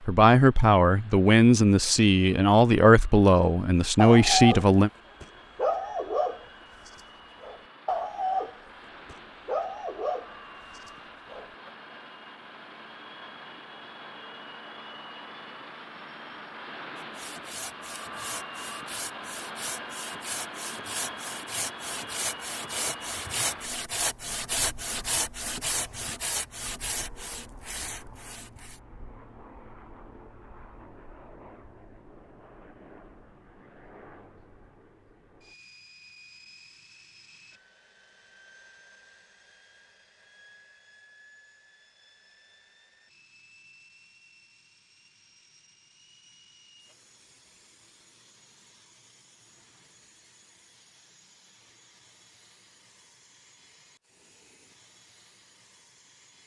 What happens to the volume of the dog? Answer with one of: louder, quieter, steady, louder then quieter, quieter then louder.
quieter.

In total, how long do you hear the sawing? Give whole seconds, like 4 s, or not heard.
12 s.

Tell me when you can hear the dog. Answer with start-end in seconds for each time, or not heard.
4.0-11.7.